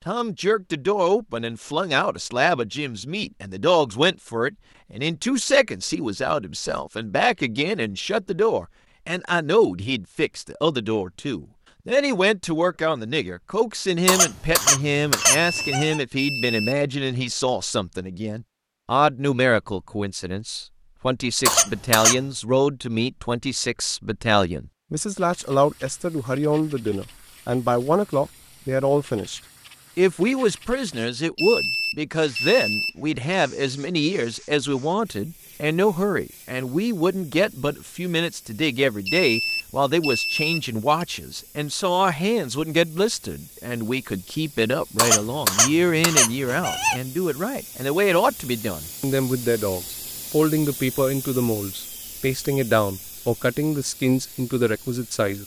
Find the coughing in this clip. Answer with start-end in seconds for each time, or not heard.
14.1-16.0, 21.4-22.2, 45.0-47.0.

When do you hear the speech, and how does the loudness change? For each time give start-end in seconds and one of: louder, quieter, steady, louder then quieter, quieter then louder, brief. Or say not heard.
0.1-55.4 steady.